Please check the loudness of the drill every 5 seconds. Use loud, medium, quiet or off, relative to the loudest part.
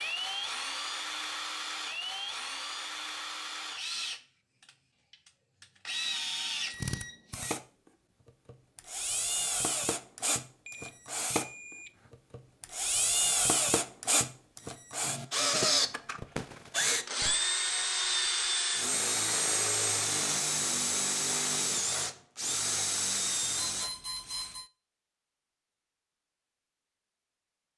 medium, medium, loud, loud, loud, off.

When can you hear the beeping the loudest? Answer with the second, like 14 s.
24 s.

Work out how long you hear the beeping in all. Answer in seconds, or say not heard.
4 s.